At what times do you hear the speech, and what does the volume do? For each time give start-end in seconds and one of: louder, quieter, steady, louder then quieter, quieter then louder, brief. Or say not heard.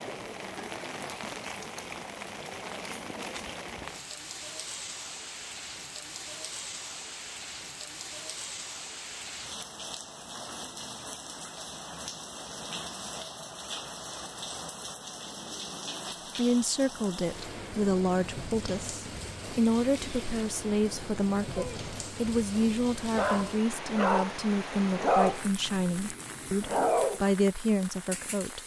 16.4-28.6 steady.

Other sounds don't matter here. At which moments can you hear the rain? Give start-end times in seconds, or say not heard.
0.0-28.6.